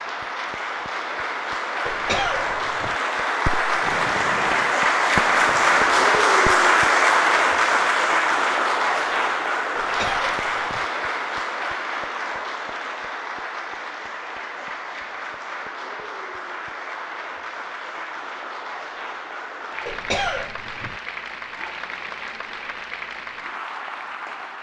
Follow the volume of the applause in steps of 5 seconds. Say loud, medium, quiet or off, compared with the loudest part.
medium, loud, medium, quiet, quiet.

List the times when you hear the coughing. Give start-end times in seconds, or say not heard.
1.9-3.0, 9.8-10.8, 19.9-20.9.